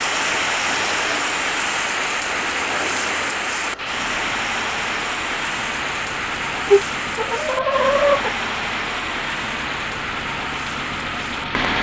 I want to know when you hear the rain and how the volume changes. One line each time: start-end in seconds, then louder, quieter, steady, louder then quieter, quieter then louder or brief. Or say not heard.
0.0-11.7 quieter.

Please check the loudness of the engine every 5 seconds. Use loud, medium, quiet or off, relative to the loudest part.
medium, loud, loud.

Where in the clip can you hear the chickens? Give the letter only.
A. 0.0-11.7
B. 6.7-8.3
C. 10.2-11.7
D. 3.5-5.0
B.